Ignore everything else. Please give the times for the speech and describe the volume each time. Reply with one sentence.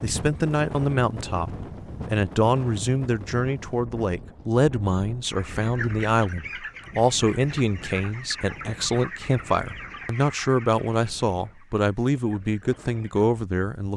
The speech can be heard from 0.0 to 13.9 s, at a steady volume.